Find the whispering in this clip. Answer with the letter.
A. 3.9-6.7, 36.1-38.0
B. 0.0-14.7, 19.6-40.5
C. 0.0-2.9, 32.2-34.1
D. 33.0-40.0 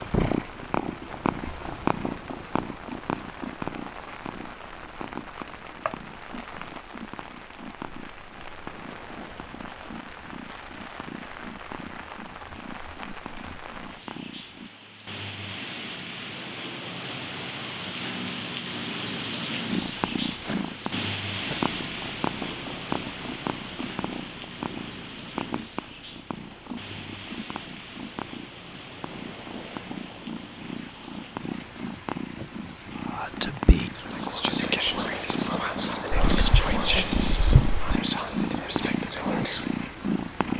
D.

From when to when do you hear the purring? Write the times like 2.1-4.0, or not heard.
0.0-14.7, 19.6-40.5.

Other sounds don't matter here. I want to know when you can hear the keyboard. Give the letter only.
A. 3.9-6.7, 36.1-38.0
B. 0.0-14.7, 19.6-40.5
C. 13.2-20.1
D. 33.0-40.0
A.